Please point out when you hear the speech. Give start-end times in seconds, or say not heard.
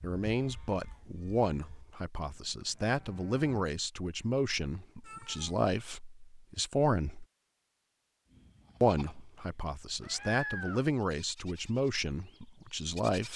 0.0-7.2, 8.8-13.3.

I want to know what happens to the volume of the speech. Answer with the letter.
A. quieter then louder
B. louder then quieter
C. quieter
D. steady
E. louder
D.